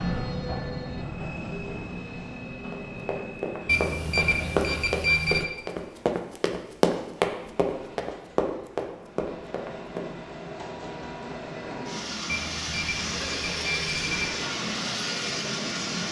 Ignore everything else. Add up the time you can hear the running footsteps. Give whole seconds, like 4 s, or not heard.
7 s.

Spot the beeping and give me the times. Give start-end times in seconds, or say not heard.
3.6-5.5, 12.2-14.3.